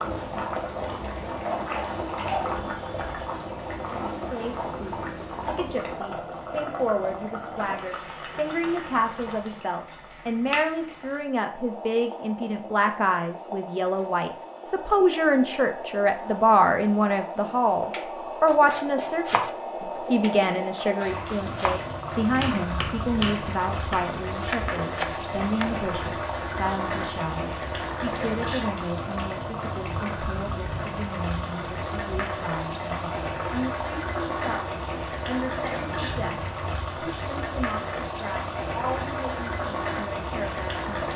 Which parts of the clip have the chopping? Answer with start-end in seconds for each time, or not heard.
17.9-25.7.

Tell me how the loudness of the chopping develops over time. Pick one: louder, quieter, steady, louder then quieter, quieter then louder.
quieter then louder.